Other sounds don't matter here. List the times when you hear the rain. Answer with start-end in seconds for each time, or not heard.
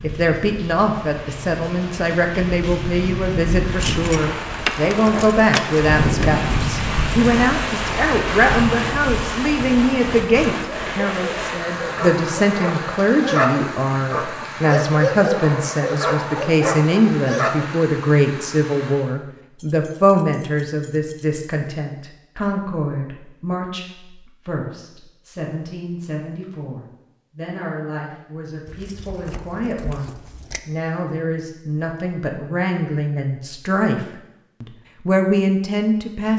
0.0-19.1.